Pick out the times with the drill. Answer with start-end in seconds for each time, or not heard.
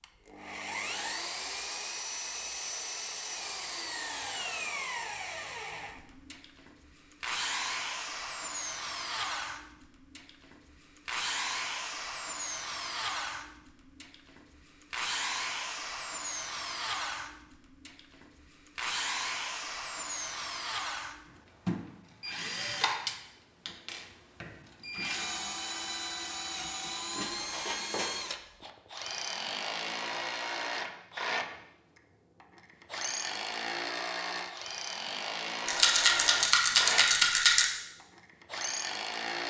0.0-39.4.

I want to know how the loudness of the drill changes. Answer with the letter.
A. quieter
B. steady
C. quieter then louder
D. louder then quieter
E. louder
B.